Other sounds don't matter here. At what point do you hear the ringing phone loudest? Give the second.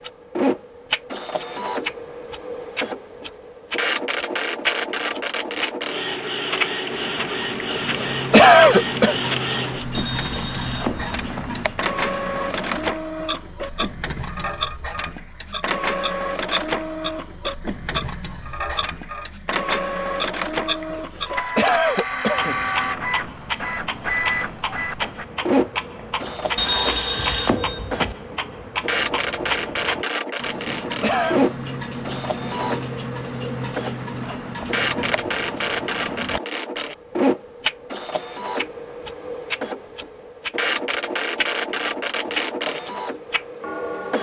27 s.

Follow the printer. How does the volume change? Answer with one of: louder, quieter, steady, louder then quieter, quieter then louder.
steady.